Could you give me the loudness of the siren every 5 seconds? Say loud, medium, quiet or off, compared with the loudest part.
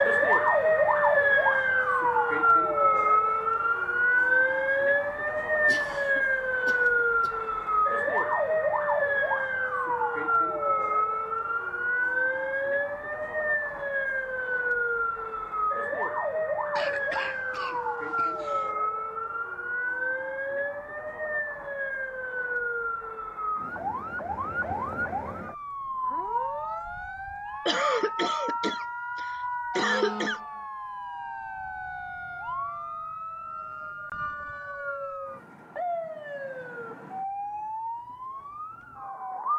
loud, loud, medium, medium, medium, medium, quiet, quiet.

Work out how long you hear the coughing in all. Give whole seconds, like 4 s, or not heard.
7 s.